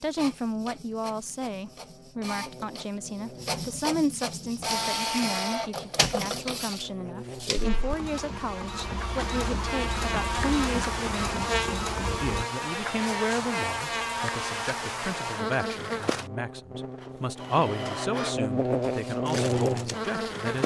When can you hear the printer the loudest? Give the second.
5 s.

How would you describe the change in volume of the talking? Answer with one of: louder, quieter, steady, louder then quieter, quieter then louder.
steady.